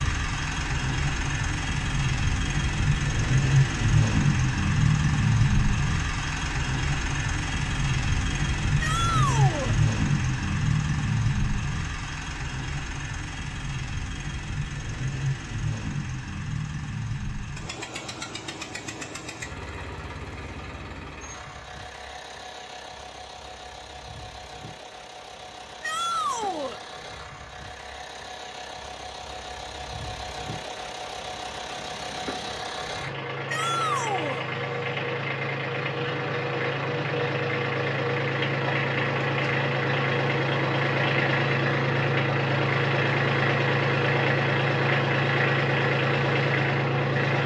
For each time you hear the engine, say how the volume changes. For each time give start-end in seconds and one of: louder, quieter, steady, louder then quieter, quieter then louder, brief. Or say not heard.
0.0-47.4 quieter then louder.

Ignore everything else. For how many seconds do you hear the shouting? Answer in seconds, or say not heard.
3 s.